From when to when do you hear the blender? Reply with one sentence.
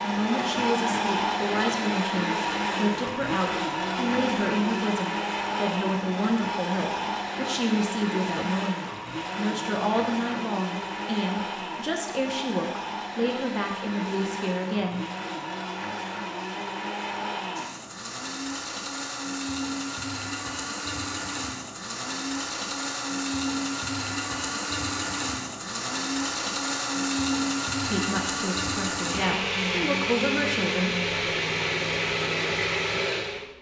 The blender can be heard from 0.0 to 33.5 s.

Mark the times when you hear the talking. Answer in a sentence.
You can hear the talking from 0.0 to 15.1 s and from 27.9 to 30.9 s.